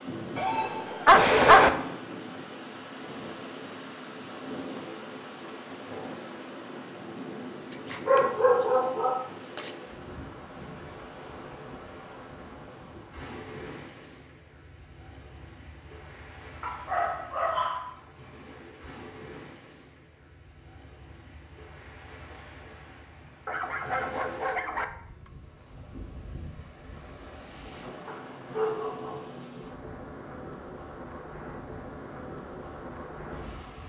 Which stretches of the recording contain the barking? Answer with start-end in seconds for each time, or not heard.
0.3-1.7, 7.7-9.7, 16.6-17.9, 23.4-25.3, 28.1-29.5.